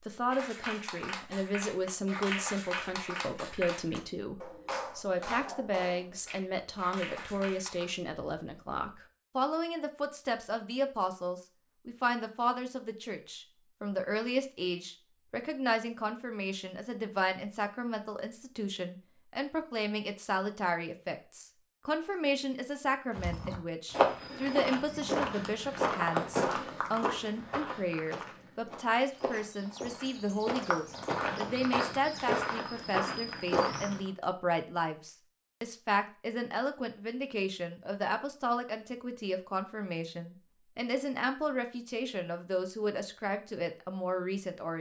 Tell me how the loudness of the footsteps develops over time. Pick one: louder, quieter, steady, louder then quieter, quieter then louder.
quieter then louder.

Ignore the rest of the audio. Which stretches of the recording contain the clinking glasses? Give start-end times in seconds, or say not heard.
not heard.